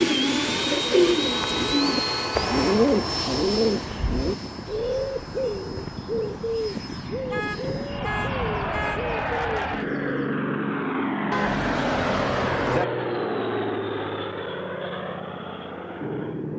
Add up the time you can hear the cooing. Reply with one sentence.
You can hear the cooing for 10 seconds altogether.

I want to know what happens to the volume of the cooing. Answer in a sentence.
The volume of the cooing goes down.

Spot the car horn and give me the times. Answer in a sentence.
You can hear the car horn from 1.2 to 2.8 s, from 7.3 to 9.1 s and from 11.3 to 12.8 s.